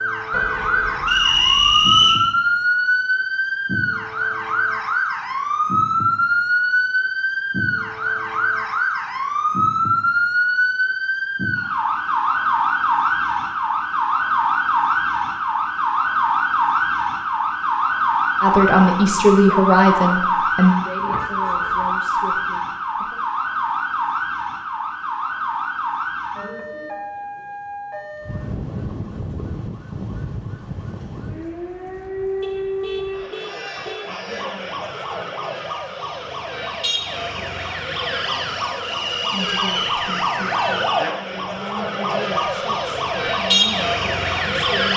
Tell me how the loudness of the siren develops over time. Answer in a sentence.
The loudness of the siren goes down, then up.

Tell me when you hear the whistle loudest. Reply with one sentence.
The loudest moment of the whistle is at 2 seconds.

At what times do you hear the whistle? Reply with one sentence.
You can hear the whistle from 1.1 to 2.2 s and from 38.8 to 39.8 s.